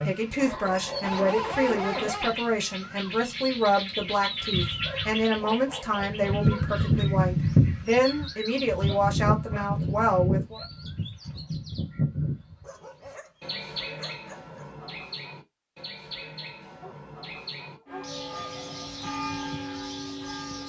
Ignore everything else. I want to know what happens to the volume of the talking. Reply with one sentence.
The loudness of the talking stays about the same.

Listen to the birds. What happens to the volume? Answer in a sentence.
The loudness of the birds goes up, then down.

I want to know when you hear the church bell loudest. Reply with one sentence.
The loudest moment of the church bell is at 19 seconds.